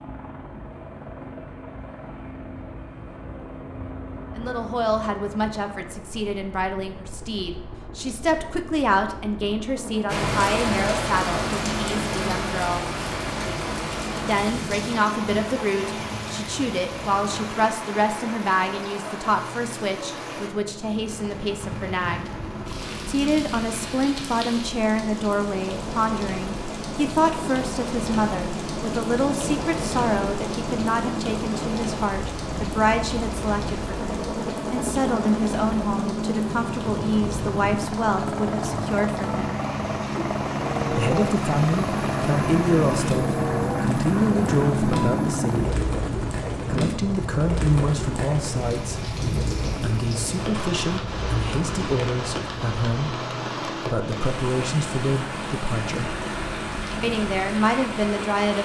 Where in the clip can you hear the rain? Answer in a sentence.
The rain can be heard from 10.1 to 58.6 s.